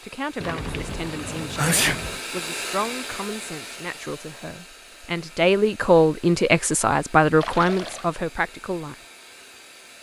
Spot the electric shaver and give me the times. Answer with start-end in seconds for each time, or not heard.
not heard.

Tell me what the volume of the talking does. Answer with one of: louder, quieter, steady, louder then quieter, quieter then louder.
louder.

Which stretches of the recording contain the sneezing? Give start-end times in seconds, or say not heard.
1.6-2.0.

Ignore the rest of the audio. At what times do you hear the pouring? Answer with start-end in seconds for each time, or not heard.
0.4-2.2, 7.4-8.1.